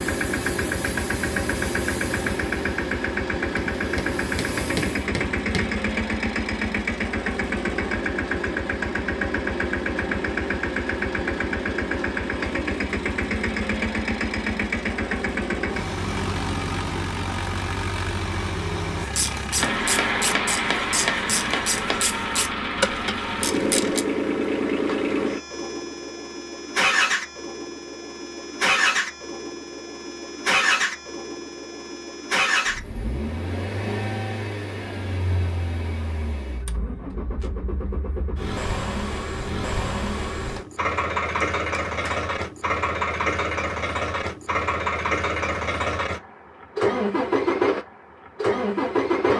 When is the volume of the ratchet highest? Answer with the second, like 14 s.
23 s.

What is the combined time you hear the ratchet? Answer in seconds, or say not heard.
5 s.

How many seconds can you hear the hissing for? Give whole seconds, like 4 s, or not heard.
5 s.